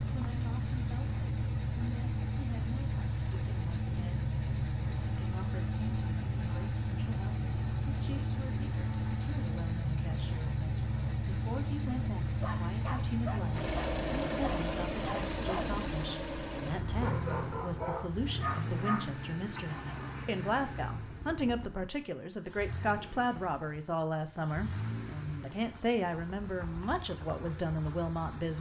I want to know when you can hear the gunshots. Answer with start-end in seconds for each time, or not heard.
not heard.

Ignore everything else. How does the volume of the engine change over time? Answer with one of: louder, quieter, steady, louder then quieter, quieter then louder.
quieter.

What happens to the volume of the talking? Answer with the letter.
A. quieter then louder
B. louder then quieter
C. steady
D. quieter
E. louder
E.